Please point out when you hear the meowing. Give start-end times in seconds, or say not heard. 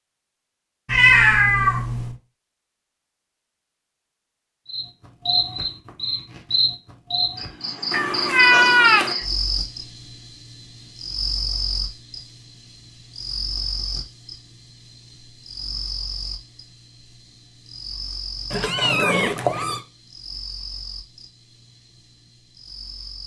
0.8-2.1, 7.9-9.2, 18.5-19.8.